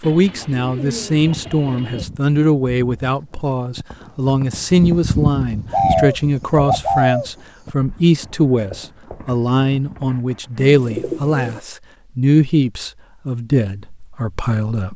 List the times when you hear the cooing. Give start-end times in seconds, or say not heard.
0.0-2.1, 5.7-7.3, 10.6-11.6.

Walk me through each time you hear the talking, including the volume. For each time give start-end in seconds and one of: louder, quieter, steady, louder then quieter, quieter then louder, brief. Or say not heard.
0.0-14.9 steady.